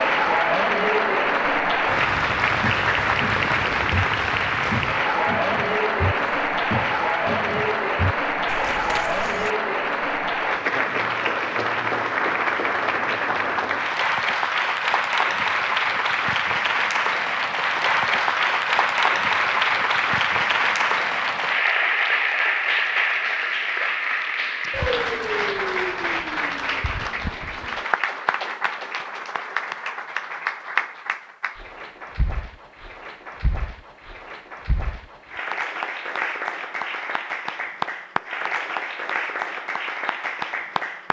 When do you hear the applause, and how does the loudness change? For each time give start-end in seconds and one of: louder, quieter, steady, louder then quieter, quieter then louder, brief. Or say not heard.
0.0-41.0 quieter.